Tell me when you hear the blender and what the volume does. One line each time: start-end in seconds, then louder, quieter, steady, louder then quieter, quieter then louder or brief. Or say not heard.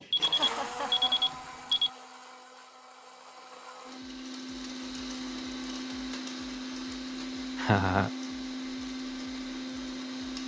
0.0-10.4 quieter then louder.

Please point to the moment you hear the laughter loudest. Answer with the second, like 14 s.
8 s.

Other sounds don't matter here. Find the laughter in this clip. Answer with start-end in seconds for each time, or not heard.
0.3-1.4, 7.5-8.1.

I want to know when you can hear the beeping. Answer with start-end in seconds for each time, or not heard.
0.1-1.9.